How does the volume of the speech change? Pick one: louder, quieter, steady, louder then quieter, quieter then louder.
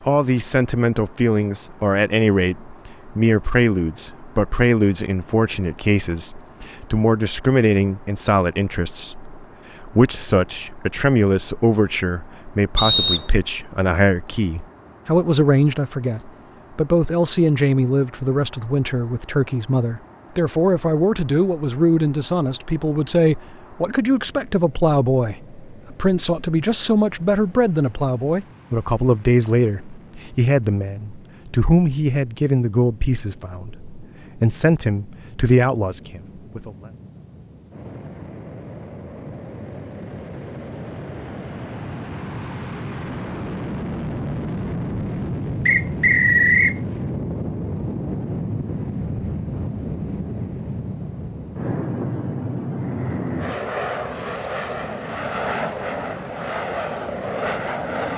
steady.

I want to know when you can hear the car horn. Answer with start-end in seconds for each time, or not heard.
not heard.